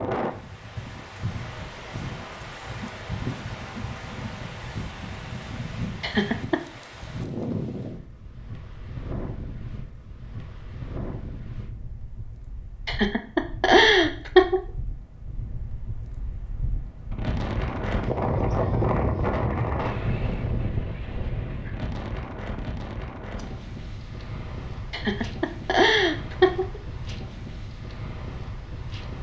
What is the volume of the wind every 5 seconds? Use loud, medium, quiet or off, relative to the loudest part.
medium, medium, quiet, loud, medium, medium.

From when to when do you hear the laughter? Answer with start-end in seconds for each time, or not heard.
6.0-6.6, 12.8-14.6, 24.9-26.8.